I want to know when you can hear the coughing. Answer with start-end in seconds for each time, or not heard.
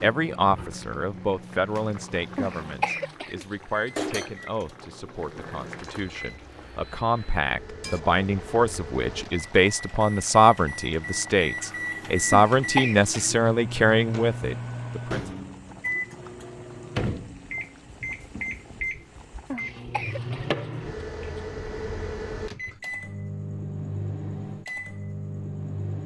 2.4-4.2, 12.3-13.4, 19.5-21.4.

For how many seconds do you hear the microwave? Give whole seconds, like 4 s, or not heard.
26 s.